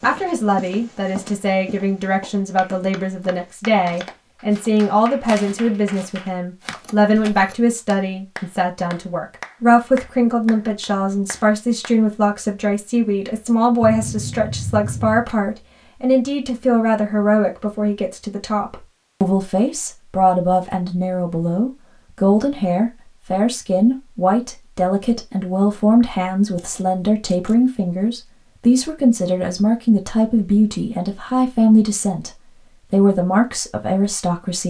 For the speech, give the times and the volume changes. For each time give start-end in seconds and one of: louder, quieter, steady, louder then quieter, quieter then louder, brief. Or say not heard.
0.0-32.3 steady
32.9-34.6 brief.